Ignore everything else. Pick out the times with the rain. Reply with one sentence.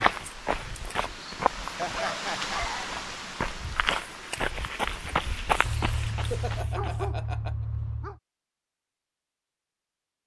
The rain can be heard from 0.0 to 6.7 s.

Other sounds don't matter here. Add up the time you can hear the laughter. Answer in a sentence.
The laughter can be heard for 2 seconds in total.